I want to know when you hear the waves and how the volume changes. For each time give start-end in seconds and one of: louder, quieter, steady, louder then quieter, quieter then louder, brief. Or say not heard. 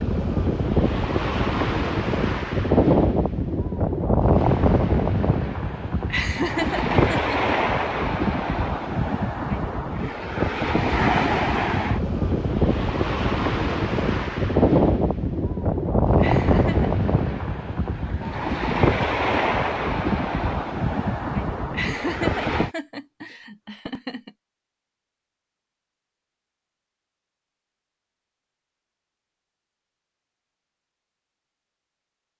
0.0-22.7 steady.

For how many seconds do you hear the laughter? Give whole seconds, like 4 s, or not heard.
5 s.